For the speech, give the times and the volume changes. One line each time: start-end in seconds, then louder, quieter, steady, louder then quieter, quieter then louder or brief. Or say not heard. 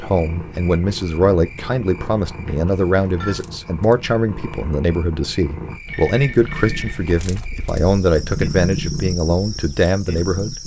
0.0-10.6 steady.